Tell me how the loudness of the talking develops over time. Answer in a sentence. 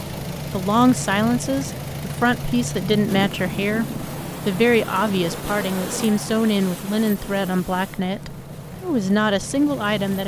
The loudness of the talking stays about the same.